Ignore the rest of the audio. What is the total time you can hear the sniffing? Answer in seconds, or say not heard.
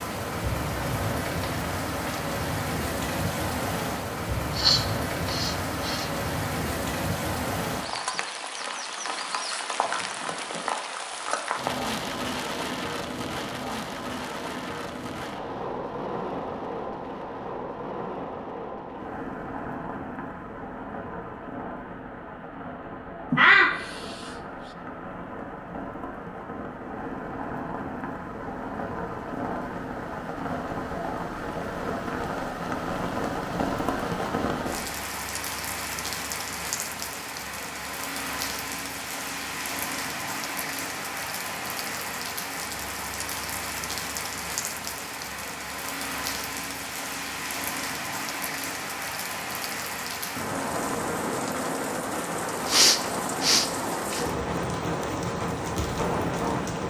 4 s.